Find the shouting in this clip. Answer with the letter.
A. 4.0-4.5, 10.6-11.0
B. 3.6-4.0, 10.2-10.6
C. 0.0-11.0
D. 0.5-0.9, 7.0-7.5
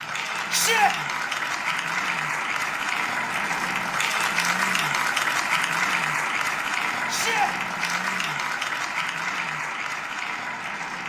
D.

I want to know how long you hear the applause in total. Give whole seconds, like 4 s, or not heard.
11 s.